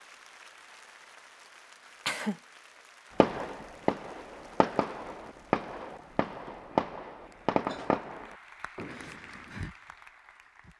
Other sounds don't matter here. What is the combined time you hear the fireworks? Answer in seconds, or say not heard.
6 s.